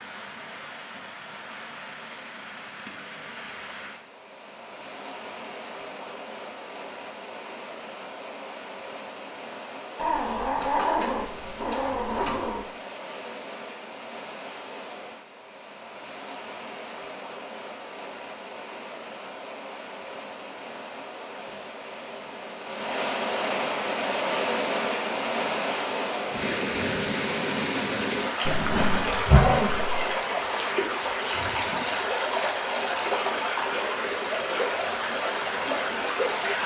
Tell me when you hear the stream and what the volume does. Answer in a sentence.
The stream can be heard from 0.0 to 36.6 s, getting louder.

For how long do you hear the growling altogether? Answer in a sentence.
You can hear the growling for 4 seconds altogether.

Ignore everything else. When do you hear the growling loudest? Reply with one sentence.
The volume of the growling peaks at 29 seconds.